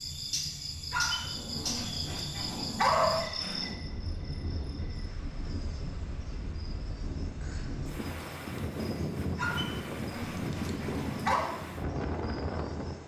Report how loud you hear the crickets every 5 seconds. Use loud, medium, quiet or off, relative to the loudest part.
loud, quiet, quiet.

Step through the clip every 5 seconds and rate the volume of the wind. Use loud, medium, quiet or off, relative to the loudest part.
medium, loud, loud.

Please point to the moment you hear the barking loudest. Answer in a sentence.
The loudest moment of the barking is at 3 seconds.